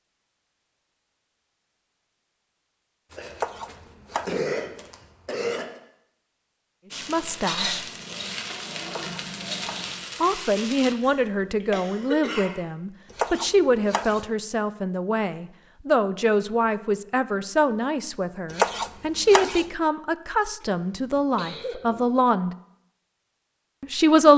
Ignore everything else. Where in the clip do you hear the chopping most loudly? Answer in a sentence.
The volume of the chopping peaks at 19 seconds.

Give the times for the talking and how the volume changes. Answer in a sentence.
You can hear the talking briefly from 7.0 to 7.8 s; from 10.2 to 22.6 s, at a steady volume; and briefly from 23.8 to 24.3 s.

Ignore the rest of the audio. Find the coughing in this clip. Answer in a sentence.
The coughing can be heard from 3.1 to 5.8 s, from 11.0 to 12.7 s and from 20.6 to 22.1 s.